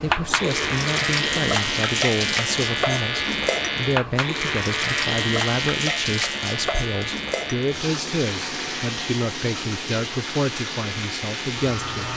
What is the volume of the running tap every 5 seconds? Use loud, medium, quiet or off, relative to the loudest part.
loud, loud, medium.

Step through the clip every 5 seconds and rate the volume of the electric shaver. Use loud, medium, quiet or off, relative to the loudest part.
loud, loud, medium.